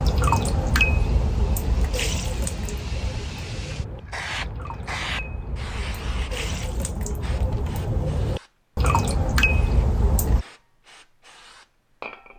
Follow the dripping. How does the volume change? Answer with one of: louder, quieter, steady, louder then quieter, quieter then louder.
quieter then louder.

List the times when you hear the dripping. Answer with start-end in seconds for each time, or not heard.
0.0-10.4.